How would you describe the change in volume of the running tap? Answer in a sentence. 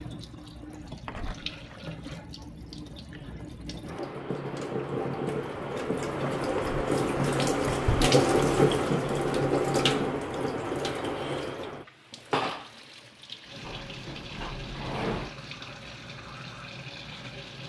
The loudness of the running tap goes up, then down.